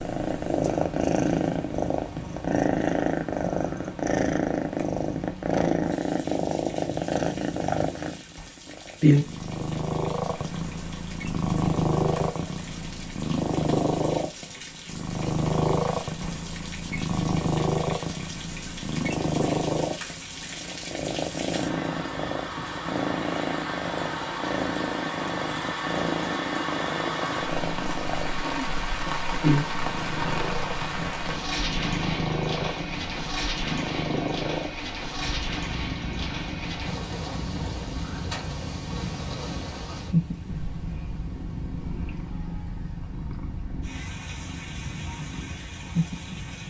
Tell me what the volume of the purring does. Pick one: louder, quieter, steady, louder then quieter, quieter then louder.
quieter.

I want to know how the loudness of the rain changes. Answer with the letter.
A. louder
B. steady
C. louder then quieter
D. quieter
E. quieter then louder
C.